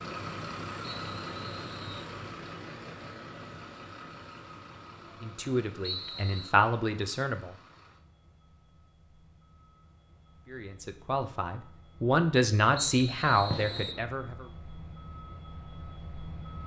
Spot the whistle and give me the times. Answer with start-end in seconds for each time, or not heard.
0.9-2.1, 5.8-6.5, 12.8-14.1.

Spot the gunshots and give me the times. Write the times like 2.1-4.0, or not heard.
13.5-14.1.